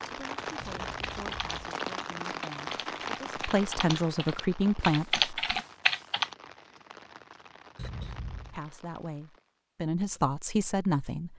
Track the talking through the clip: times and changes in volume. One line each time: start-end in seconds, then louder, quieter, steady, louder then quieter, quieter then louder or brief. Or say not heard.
0.1-5.6 louder
8.5-11.3 brief.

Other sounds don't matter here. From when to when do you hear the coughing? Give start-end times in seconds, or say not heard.
0.6-1.6, 7.8-8.6.